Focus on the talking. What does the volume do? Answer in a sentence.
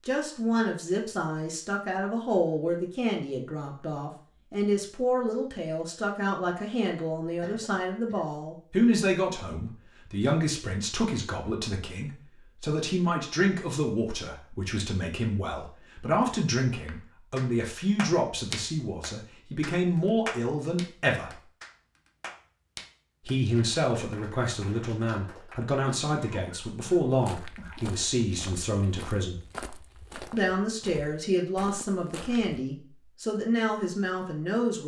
The loudness of the talking stays about the same.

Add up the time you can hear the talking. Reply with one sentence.
You can hear the talking for 32 seconds altogether.